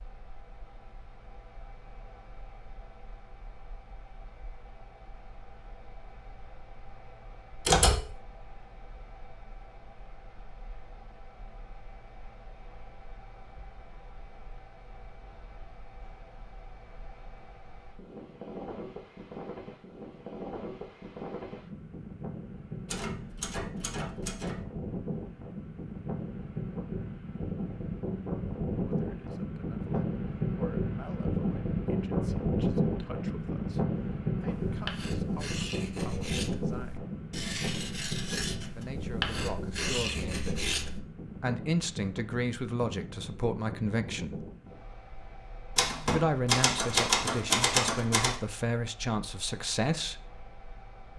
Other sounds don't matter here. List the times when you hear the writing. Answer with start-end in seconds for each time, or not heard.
34.5-41.0.